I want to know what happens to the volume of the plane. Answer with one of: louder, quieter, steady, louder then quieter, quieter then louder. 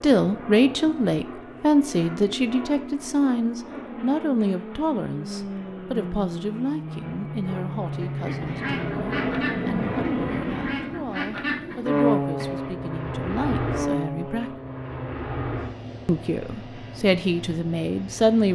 louder then quieter.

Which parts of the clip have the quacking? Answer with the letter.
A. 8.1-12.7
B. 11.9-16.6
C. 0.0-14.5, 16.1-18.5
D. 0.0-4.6
A.